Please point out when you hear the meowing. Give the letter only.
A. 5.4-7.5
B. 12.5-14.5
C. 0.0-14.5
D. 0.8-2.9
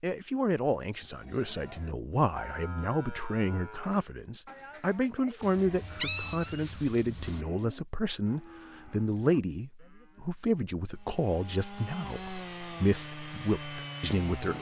A.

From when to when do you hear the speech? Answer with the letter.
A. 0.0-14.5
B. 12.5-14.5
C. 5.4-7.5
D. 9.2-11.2
A.